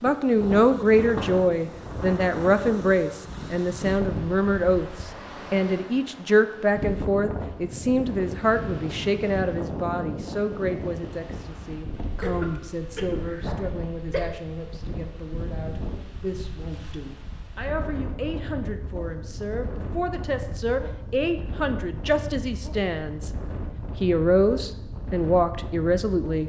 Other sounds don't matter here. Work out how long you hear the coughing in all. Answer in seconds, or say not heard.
2 s.